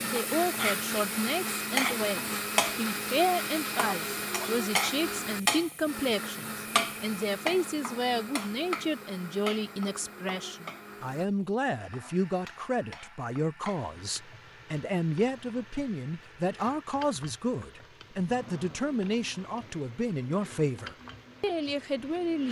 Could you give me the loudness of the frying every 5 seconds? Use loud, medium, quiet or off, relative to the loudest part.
loud, loud, quiet, quiet, quiet.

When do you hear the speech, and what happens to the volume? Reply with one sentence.
You can hear the speech from 0.0 to 22.4 s, at a steady volume.